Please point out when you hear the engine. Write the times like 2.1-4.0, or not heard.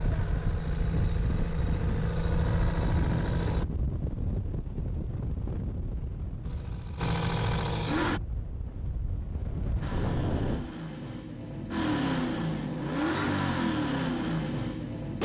0.0-3.6, 6.4-8.2, 9.8-15.1.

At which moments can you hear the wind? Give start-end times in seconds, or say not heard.
0.0-10.8.